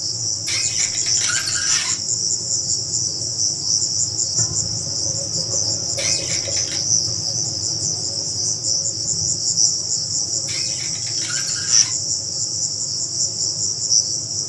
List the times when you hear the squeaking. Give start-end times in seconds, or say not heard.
0.5-1.9, 6.0-6.8, 10.4-11.9.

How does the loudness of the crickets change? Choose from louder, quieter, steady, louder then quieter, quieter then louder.
steady.